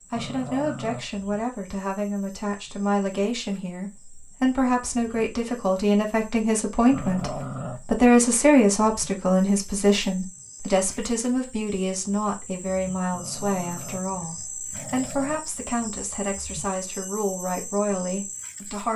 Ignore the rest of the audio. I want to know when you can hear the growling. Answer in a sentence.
You can hear the growling from 0.1 to 1.1 s, from 6.9 to 7.8 s and from 13.1 to 15.4 s.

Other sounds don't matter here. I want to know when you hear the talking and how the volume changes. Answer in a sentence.
The talking can be heard from 0.1 to 18.9 s, getting louder then quieter.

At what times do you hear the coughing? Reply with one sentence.
The coughing can't be heard in this clip.